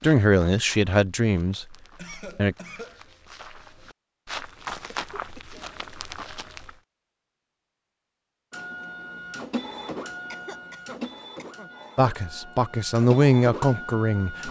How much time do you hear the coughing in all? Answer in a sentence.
You can hear the coughing for 3 seconds altogether.